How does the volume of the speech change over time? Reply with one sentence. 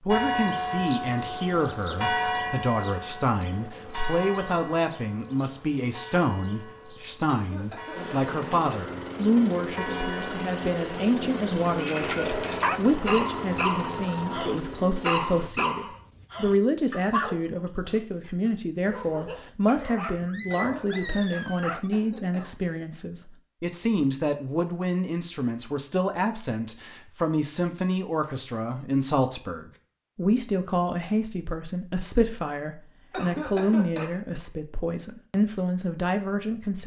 The volume of the speech stays about the same.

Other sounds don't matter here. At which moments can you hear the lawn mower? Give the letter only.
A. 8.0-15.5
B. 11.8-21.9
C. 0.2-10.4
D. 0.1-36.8
A.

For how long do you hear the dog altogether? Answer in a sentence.
The dog can be heard for 10 seconds in total.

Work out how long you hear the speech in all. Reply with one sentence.
The speech can be heard for 37 seconds in total.